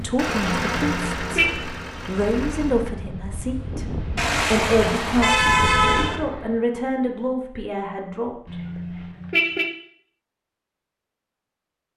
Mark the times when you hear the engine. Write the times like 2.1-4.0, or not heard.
0.0-3.0.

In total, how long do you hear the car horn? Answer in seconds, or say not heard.
4 s.